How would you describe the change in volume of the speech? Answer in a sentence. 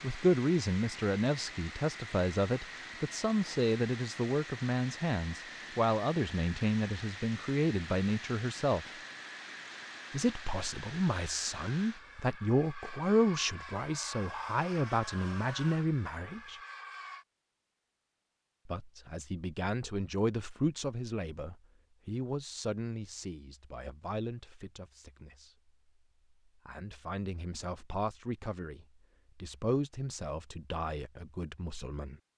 The loudness of the speech goes down.